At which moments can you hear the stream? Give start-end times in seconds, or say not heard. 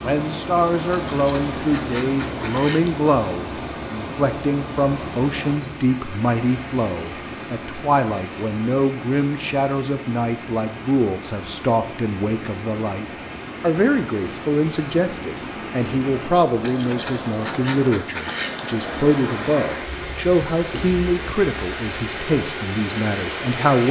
0.0-23.8.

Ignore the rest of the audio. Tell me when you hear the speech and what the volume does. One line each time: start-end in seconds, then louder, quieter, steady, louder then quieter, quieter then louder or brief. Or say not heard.
0.0-23.8 steady.